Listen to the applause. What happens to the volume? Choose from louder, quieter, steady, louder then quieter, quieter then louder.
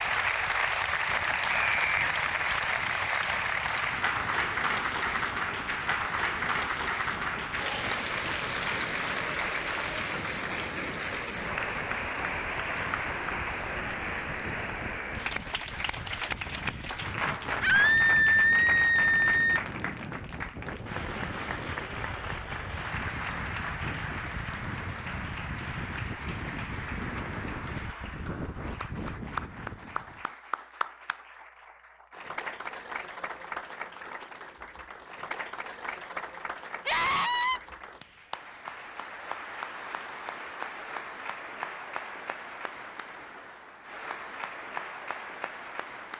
quieter.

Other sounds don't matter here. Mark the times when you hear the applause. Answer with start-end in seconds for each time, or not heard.
0.0-46.1.